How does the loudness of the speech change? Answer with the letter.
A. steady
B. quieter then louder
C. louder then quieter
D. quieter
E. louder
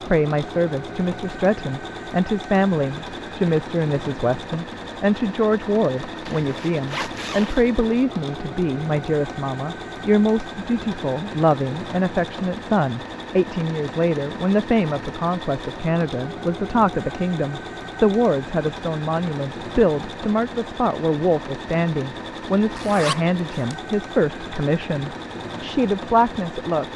A.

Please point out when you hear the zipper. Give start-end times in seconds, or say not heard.
6.0-7.7, 22.8-23.8.